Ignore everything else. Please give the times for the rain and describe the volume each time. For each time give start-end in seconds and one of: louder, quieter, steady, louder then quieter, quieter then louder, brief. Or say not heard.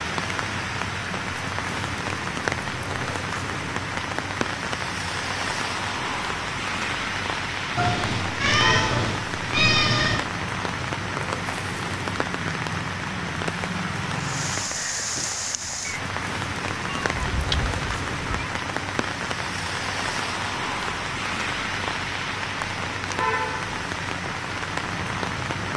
0.0-25.7 steady.